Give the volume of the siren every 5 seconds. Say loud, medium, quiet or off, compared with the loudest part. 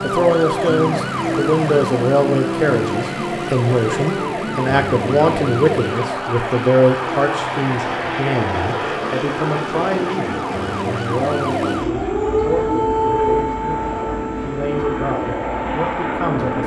loud, medium, loud, medium.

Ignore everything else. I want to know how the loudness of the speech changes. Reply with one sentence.
The volume of the speech goes down.